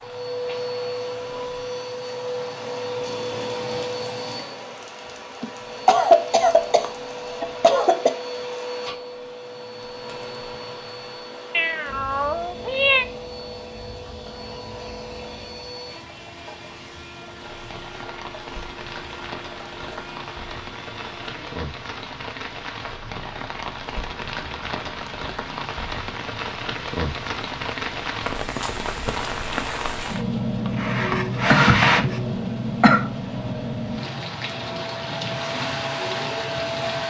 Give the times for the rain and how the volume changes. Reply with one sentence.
You can hear the rain from 0.0 to 37.0 s, getting louder.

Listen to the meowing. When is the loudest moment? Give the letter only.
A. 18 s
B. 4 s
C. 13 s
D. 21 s
C.